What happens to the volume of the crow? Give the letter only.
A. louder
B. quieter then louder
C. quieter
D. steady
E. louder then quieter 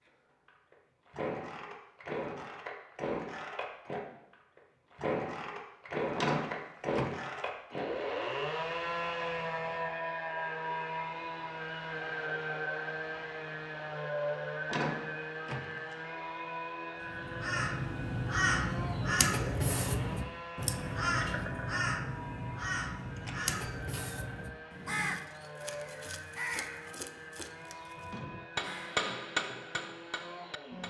C.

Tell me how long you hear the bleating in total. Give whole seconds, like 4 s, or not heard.
not heard.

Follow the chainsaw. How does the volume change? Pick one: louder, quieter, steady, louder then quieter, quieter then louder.
quieter.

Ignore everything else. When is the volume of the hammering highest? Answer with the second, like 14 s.
29 s.